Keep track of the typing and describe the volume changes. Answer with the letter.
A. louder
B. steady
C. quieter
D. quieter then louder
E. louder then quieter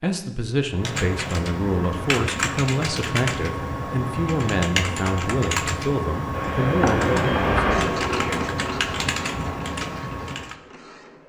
B.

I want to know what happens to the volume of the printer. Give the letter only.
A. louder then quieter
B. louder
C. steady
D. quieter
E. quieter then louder
D.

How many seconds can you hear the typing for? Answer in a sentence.
You can hear the typing for 10 seconds altogether.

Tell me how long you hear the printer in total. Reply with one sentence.
You can hear the printer for 5 seconds altogether.